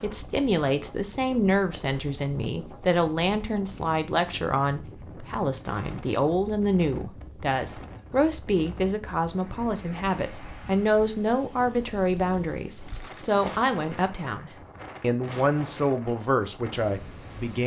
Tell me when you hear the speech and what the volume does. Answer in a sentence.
The speech can be heard from 0.0 to 17.6 s, at a steady volume.